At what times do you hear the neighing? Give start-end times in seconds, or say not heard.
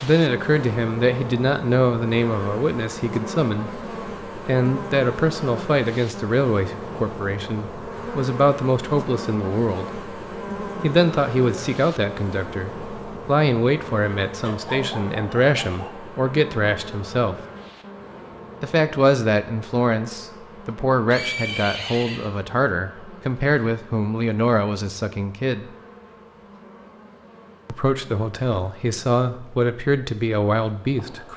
21.1-22.3.